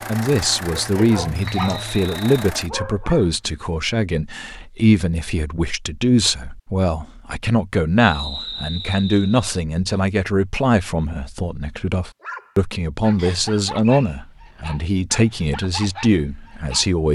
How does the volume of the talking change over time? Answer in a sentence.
The loudness of the talking stays about the same.